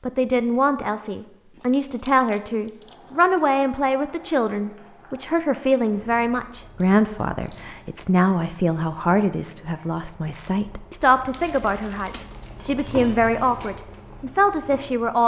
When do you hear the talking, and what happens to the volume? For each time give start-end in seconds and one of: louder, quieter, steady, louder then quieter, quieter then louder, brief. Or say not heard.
0.0-15.2 steady.